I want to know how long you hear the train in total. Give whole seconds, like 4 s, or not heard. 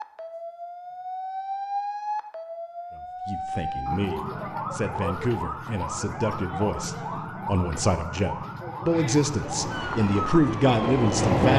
2 s.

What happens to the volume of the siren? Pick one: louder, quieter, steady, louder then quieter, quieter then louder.
steady.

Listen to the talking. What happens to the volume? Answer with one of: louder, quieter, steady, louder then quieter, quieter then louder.
louder.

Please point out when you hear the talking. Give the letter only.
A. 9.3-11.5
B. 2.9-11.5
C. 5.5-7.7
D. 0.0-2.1
B.